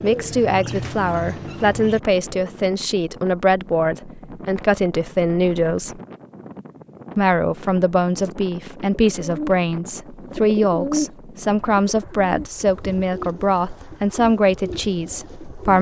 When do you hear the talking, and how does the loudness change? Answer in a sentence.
You can hear the talking from 0.0 to 6.0 s, at a steady volume; and from 7.2 to 15.7 s, at a steady volume.